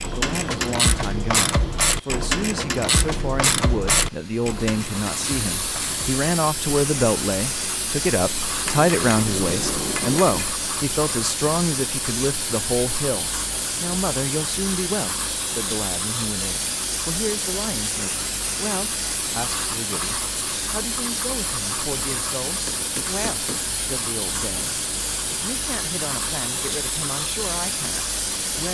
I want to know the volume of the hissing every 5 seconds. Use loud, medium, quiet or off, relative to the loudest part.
quiet, loud, loud, loud, loud, loud.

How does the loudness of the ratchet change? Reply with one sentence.
The loudness of the ratchet goes down.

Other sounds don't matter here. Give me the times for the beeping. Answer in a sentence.
The beeping can't be heard in this clip.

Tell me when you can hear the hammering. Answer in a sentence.
You can hear the hammering from 8.7 to 10.6 s and from 22.4 to 23.8 s.